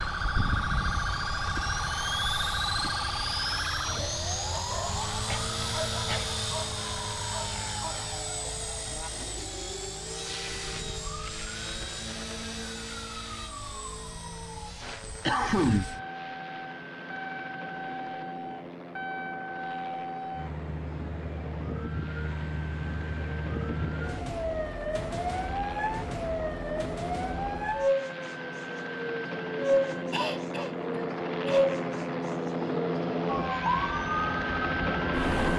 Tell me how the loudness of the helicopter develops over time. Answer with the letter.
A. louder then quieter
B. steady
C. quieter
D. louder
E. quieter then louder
E.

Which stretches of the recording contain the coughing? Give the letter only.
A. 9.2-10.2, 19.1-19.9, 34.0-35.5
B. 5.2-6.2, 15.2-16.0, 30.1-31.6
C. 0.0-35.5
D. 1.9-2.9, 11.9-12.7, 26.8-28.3
B.